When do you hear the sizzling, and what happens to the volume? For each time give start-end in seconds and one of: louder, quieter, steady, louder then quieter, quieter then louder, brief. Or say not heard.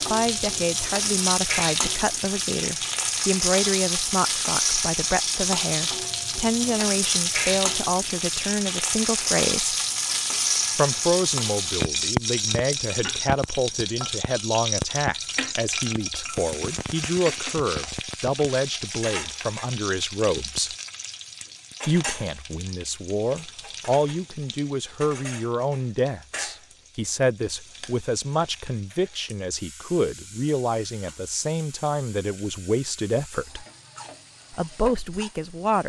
0.0-35.8 quieter.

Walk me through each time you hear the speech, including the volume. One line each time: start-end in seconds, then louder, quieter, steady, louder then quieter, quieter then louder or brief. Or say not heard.
0.1-9.8 steady
10.8-20.8 steady
21.9-33.6 steady
34.5-35.8 brief.